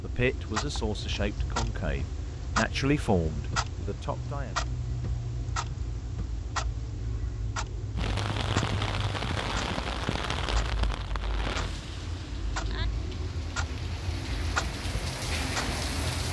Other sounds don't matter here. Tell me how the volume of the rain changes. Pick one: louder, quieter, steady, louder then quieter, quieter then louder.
quieter then louder.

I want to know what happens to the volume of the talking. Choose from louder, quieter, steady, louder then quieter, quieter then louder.
louder then quieter.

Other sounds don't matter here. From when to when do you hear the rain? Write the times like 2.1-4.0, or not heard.
8.0-16.2.